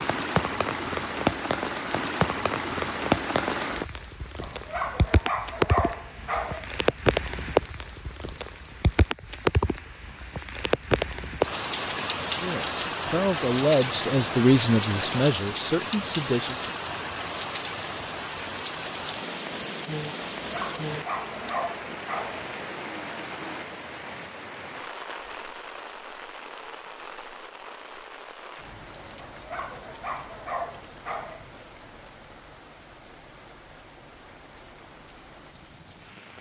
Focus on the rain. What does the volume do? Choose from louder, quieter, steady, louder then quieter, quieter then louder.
quieter.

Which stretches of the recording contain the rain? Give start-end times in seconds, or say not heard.
0.0-36.3.